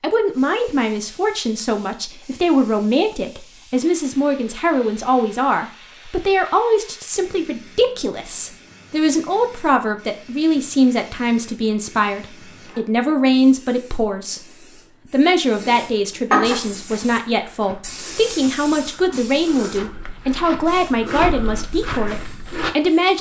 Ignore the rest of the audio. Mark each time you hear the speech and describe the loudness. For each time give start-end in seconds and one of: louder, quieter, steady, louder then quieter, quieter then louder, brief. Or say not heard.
0.0-23.1 steady.